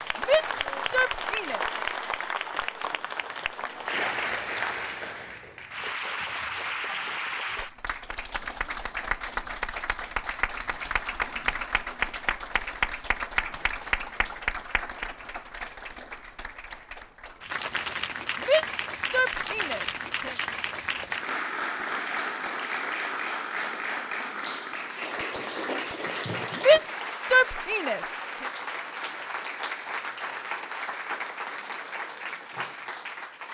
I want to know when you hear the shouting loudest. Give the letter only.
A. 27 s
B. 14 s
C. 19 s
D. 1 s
A.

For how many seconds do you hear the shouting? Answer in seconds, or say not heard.
5 s.